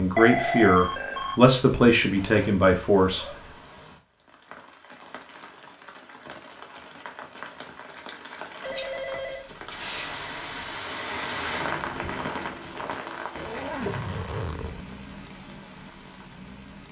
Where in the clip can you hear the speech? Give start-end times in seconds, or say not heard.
0.0-3.2.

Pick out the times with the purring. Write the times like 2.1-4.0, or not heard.
not heard.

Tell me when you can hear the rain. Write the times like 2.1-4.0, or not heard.
0.0-16.8.